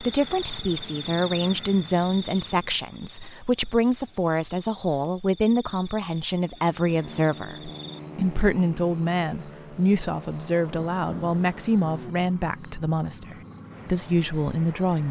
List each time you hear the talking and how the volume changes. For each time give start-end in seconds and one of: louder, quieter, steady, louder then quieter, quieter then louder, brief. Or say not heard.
0.0-15.0 steady.